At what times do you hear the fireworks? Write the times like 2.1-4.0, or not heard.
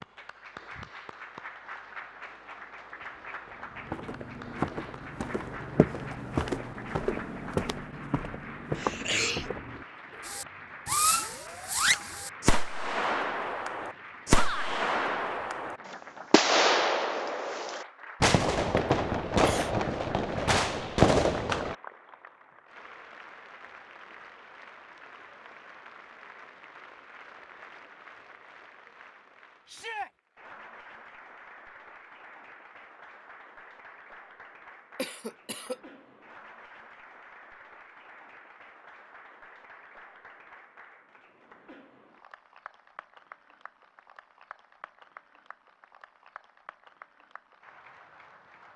10.2-21.8.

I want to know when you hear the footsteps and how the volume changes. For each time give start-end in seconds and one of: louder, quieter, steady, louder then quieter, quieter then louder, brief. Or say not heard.
3.5-10.3 steady.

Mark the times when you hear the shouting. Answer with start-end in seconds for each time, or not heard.
14.3-14.8, 29.6-30.1.